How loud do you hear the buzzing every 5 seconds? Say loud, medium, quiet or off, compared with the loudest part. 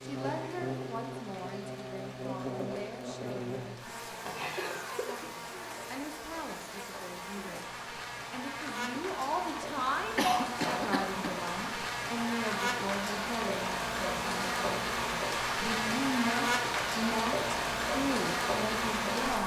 medium, medium, loud, loud.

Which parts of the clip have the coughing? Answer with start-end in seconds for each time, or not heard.
4.5-5.3, 10.2-11.4.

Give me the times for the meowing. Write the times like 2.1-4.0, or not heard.
4.2-4.8.